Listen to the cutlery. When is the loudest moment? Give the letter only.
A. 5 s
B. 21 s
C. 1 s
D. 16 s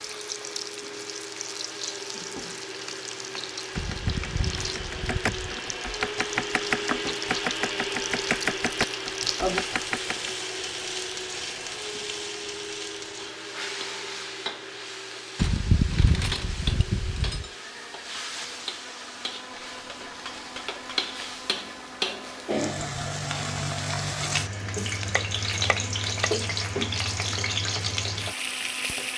D.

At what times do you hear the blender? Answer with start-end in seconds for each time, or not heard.
0.0-29.1.